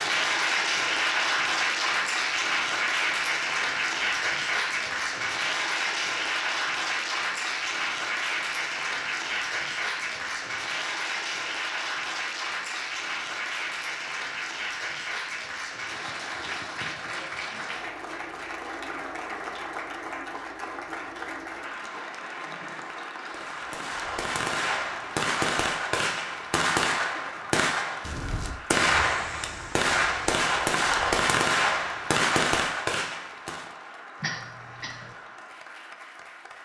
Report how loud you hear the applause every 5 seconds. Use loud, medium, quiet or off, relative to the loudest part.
loud, loud, medium, medium, medium, quiet, quiet, quiet.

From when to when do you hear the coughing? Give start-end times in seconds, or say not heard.
34.2-35.1.